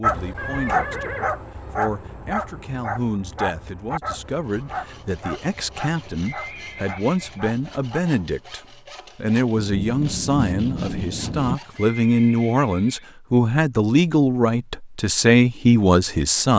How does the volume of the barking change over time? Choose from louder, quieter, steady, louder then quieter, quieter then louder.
quieter.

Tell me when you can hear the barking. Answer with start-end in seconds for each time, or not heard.
0.0-8.0.